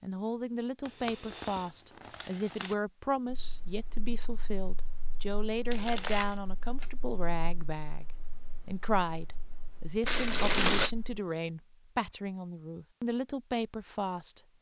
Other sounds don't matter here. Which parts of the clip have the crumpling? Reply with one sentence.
The crumpling can be heard from 0.8 to 2.8 s, from 5.7 to 6.3 s and from 10.1 to 10.9 s.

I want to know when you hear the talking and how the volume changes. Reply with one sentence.
You can hear the talking from 0.0 to 14.4 s, at a steady volume.